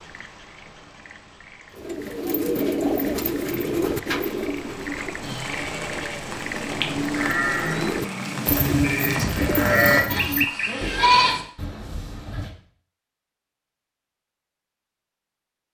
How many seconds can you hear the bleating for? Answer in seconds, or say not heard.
7 s.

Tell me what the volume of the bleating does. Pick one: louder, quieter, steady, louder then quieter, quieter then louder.
louder.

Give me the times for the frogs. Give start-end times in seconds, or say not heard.
0.0-8.4.